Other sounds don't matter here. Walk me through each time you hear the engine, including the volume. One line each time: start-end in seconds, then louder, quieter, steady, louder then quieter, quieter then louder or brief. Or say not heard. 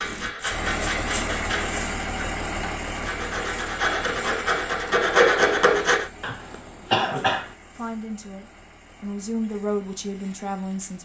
0.0-11.0 quieter.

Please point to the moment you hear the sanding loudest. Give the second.
5 s.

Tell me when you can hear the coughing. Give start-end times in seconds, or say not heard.
6.2-7.5.